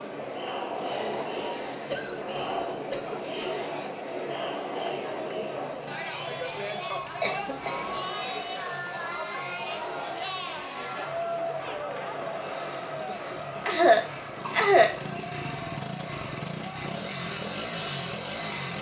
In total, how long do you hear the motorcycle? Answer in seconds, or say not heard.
19 s.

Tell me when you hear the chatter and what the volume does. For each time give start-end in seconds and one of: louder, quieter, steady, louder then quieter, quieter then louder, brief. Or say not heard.
0.0-18.7 quieter.